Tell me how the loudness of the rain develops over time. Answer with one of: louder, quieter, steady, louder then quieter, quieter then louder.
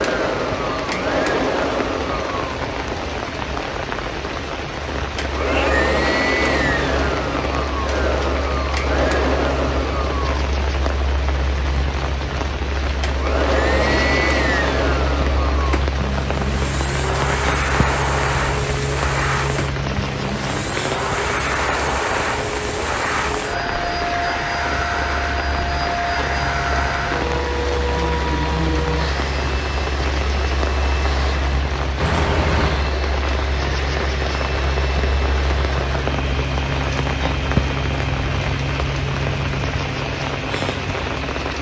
steady.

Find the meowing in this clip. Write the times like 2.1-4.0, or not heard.
5.3-5.8, 32.0-32.9.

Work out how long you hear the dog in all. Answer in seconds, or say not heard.
not heard.